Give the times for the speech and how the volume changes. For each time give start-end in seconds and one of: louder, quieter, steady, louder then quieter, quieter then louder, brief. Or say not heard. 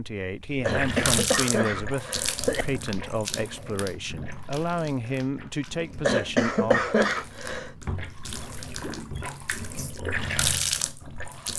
0.0-6.8 steady.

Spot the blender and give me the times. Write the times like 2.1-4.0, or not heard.
not heard.